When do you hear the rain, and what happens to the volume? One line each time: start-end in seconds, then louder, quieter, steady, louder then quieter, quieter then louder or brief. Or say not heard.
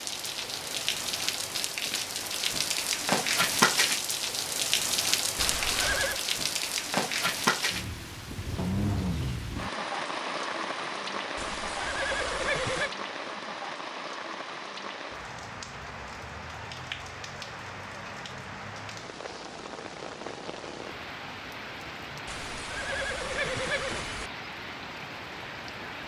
0.0-26.0 quieter.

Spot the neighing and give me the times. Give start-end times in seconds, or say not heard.
5.3-6.2, 11.3-12.9, 22.2-24.3.